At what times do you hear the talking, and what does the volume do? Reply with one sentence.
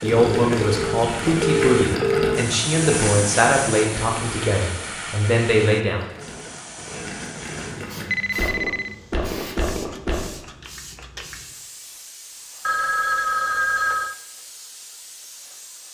The talking can be heard from 0.0 to 6.0 s, at a steady volume.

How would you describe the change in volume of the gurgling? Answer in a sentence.
The loudness of the gurgling goes down, then up.